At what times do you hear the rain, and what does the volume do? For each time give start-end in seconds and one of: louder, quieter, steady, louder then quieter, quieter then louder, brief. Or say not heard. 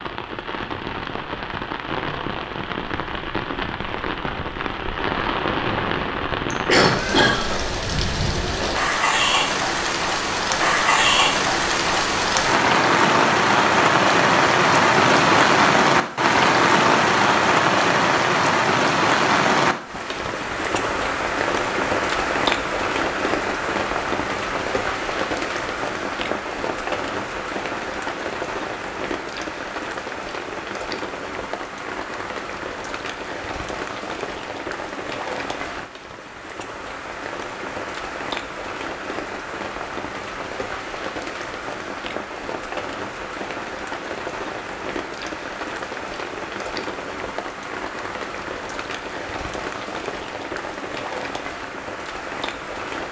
0.0-53.0 louder then quieter.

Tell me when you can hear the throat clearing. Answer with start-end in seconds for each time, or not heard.
6.5-7.5.